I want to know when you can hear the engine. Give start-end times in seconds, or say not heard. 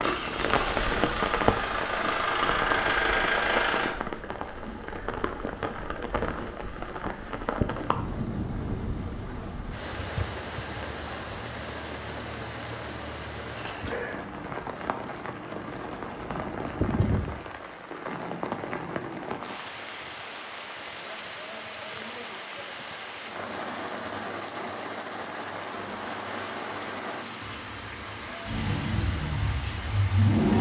0.0-4.0, 28.4-30.5.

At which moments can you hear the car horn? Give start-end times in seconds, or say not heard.
not heard.